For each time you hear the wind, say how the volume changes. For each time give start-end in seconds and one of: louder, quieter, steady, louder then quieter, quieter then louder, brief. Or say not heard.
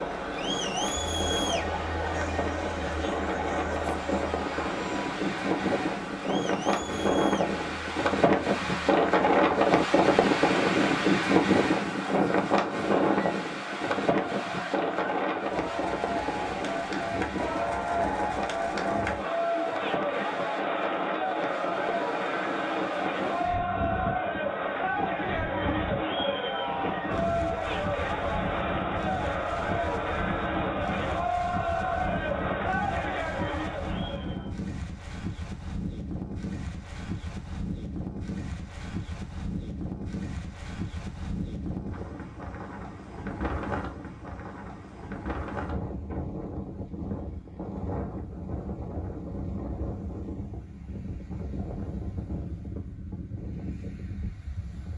0.0-54.9 quieter.